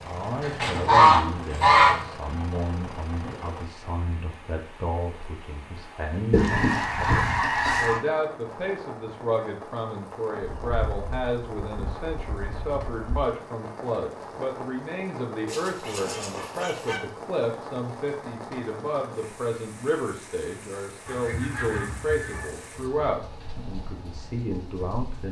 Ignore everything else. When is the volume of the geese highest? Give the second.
1 s.